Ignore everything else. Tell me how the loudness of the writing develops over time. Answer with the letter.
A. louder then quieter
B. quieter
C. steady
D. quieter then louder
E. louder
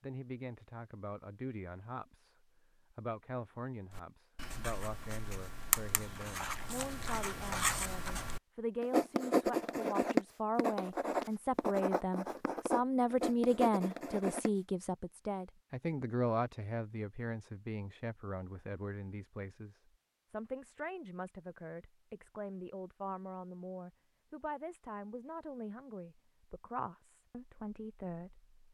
A.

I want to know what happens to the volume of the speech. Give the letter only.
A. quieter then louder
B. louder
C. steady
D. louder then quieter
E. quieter
D.